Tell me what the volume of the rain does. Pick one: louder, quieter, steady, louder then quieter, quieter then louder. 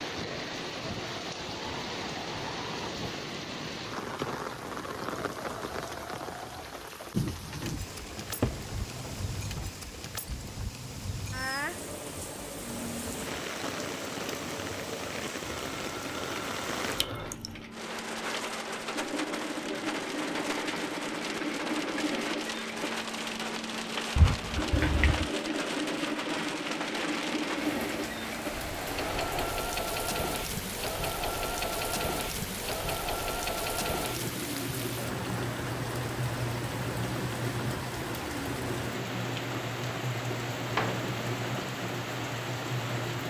steady.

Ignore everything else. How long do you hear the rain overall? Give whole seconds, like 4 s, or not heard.
43 s.